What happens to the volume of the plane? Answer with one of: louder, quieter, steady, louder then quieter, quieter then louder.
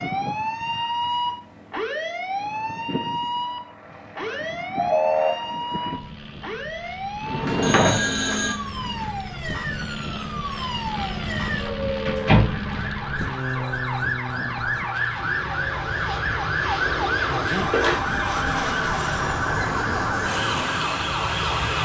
louder.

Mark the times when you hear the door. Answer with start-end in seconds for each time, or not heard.
7.2-8.8, 12.1-12.7.